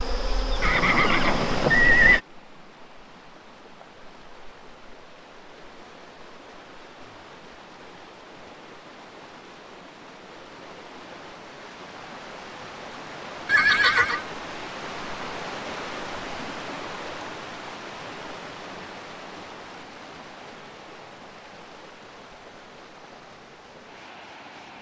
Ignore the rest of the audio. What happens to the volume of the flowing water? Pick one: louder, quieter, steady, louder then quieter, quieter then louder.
louder then quieter.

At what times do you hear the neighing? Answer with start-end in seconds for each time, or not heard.
0.6-2.2, 13.4-14.2.